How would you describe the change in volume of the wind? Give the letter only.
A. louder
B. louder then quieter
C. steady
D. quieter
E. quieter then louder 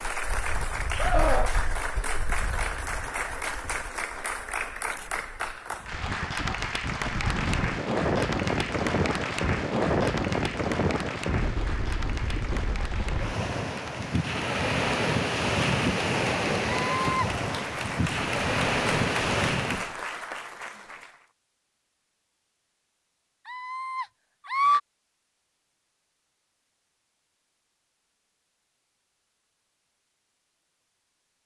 A.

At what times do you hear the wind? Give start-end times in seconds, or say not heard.
0.1-19.9.